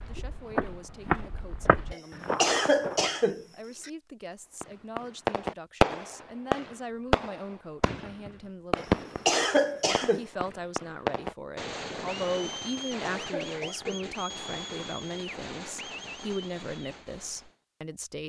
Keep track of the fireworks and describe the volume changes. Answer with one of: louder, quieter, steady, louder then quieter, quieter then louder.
quieter.